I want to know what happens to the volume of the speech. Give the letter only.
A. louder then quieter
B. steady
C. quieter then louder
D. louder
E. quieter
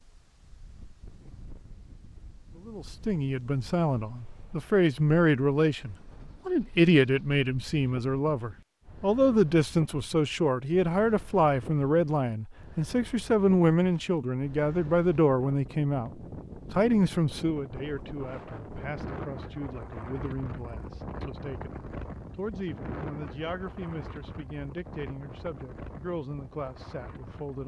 E.